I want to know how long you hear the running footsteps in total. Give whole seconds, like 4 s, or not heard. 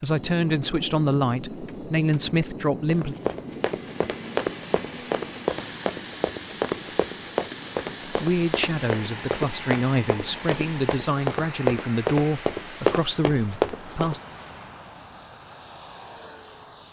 11 s.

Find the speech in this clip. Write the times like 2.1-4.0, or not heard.
0.0-3.1, 8.1-14.2.